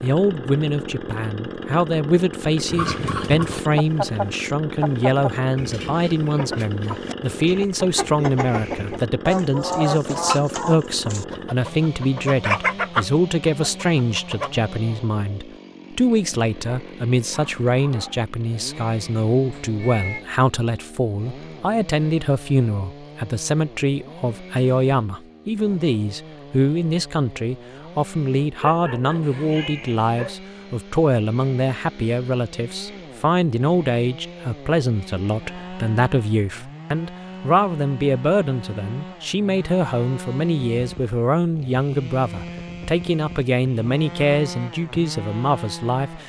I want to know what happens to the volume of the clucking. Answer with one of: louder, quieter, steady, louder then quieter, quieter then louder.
quieter then louder.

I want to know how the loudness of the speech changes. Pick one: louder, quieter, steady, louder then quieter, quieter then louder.
steady.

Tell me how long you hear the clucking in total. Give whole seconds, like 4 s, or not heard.
12 s.